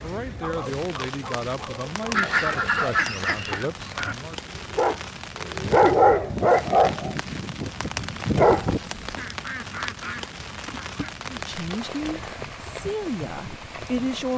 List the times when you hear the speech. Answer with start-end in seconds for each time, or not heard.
0.0-4.3, 11.2-14.3.